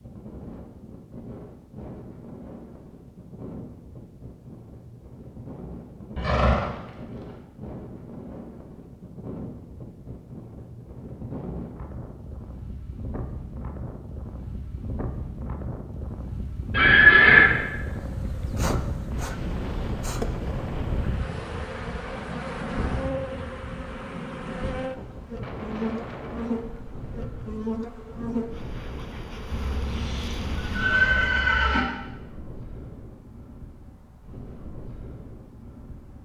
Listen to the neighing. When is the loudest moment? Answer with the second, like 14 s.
17 s.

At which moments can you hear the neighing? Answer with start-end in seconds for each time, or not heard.
6.2-6.7, 16.7-17.4, 29.5-31.9.